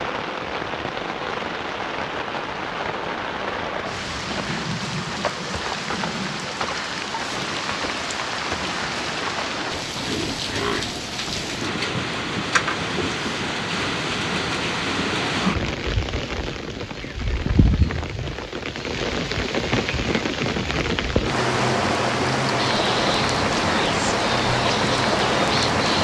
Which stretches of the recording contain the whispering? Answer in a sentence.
You can hear the whispering from 22.6 to 25.9 s.